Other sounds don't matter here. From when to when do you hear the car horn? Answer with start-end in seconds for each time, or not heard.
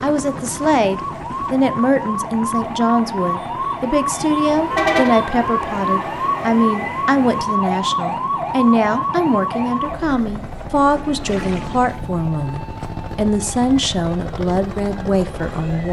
4.7-5.2.